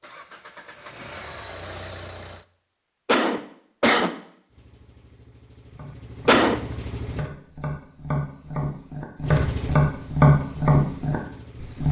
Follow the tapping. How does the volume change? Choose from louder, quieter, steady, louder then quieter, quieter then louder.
louder.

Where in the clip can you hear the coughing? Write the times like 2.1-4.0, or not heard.
3.0-4.2, 6.2-6.7.